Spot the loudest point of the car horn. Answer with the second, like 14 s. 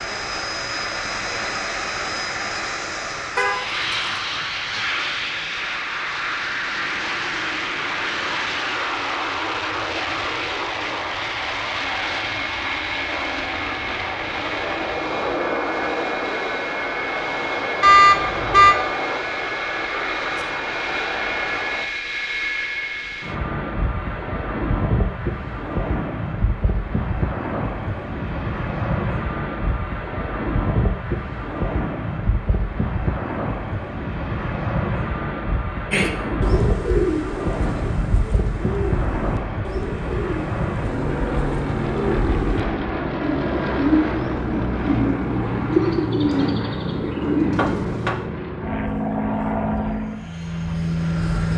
18 s.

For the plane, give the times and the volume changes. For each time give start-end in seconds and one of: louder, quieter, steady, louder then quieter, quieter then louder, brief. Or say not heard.
0.0-51.5 steady.